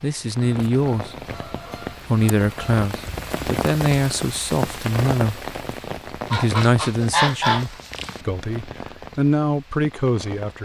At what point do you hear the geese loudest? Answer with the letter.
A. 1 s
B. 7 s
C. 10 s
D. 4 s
B.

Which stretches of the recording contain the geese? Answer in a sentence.
The geese can be heard from 0.4 to 2.8 s and from 6.3 to 8.2 s.